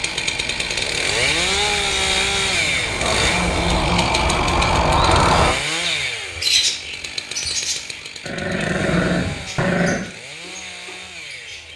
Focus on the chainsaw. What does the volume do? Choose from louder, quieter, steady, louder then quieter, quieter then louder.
quieter.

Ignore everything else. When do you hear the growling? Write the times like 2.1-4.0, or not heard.
2.9-4.1, 8.2-10.1.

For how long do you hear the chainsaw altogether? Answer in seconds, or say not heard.
12 s.